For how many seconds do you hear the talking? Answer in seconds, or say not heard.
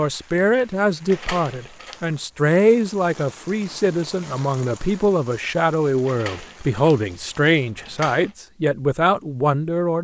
10 s.